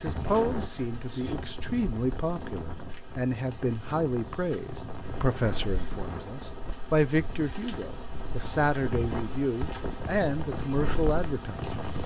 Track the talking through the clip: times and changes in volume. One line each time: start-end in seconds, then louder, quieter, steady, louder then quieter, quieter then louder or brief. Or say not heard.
0.0-12.0 steady.